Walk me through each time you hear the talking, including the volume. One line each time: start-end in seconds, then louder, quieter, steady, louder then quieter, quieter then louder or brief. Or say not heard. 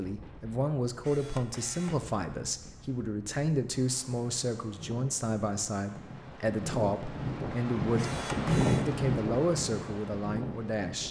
0.0-11.0 steady.